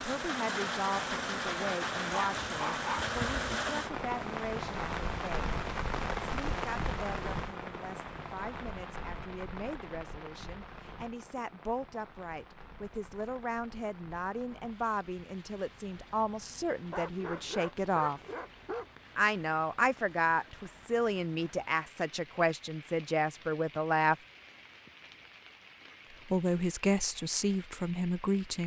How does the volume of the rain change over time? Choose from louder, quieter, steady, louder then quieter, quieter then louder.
quieter.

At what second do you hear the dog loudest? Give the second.
3 s.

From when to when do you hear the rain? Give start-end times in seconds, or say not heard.
0.0-28.6.